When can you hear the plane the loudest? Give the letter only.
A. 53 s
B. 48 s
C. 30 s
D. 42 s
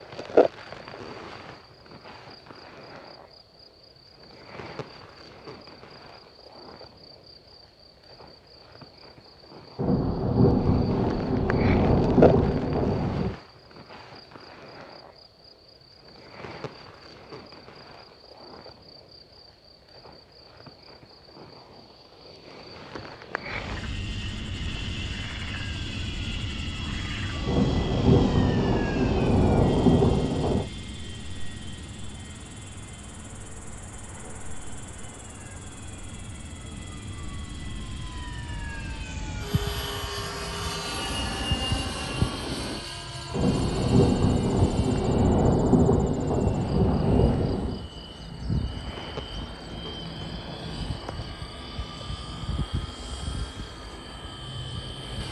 D.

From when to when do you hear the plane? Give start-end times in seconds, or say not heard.
23.4-55.2.